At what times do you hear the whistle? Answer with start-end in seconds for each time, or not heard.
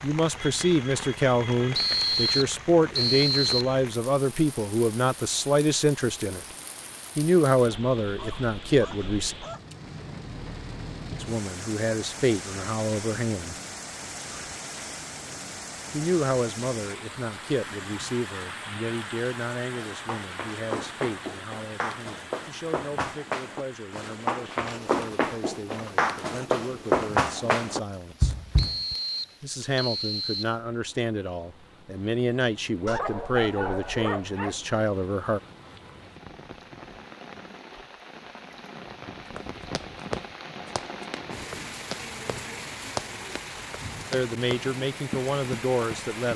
1.7-3.8, 28.6-30.6.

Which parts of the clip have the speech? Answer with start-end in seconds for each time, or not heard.
0.0-6.4, 7.2-9.3, 11.2-13.6, 15.9-28.4, 29.4-35.4, 44.1-46.3.